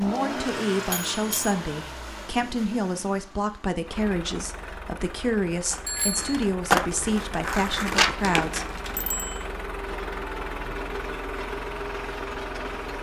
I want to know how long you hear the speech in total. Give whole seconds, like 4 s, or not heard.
9 s.